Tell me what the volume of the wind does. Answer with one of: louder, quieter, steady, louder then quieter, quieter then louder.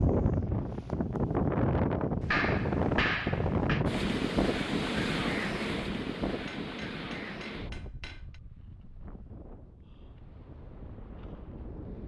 quieter.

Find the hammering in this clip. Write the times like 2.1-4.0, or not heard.
2.2-3.9, 6.5-8.4.